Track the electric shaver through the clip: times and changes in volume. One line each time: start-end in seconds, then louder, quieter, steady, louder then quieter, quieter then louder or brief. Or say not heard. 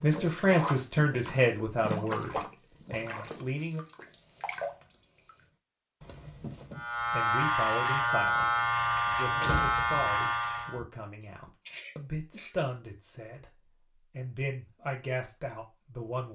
6.8-10.8 steady.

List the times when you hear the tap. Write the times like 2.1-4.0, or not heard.
0.0-5.3.